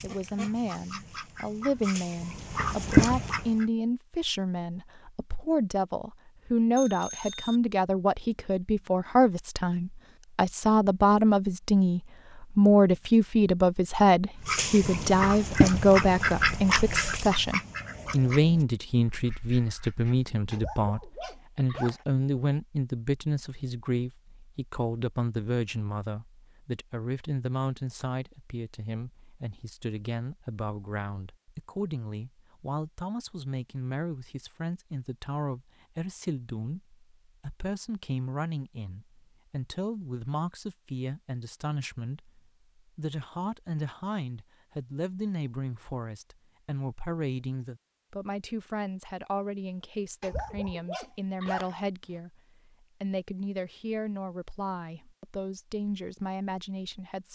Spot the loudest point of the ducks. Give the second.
3 s.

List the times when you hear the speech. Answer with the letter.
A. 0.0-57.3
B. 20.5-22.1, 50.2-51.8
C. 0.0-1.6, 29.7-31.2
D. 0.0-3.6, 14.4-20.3
A.